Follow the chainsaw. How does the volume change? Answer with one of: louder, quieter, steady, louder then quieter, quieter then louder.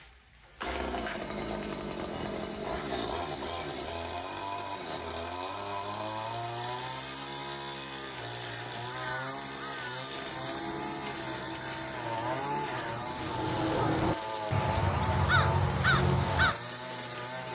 steady.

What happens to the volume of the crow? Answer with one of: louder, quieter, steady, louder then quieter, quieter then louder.
louder.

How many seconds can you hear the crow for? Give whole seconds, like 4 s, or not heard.
8 s.